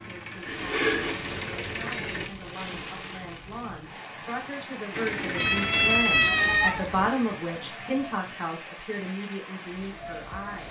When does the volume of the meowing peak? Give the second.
6 s.